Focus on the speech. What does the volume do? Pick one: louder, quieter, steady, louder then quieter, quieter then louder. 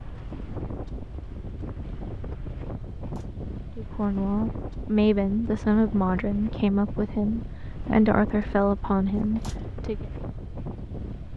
steady.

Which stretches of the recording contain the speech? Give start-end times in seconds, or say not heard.
3.8-10.1.